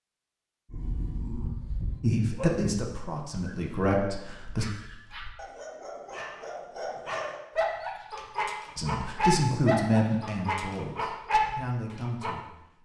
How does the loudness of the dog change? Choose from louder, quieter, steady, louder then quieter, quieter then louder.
quieter then louder.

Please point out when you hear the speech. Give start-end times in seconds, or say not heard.
2.0-4.7, 8.8-12.5.